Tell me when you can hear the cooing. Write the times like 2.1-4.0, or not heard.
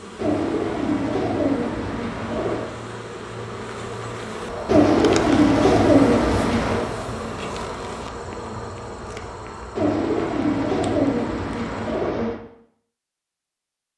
0.1-2.7, 4.7-6.9, 9.8-12.4.